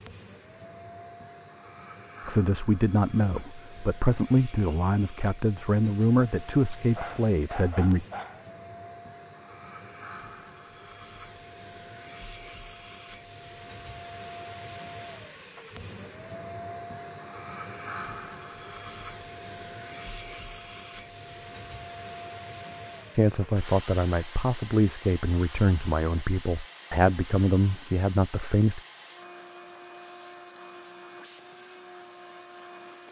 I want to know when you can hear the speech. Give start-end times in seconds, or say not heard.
2.2-8.1, 23.1-28.8.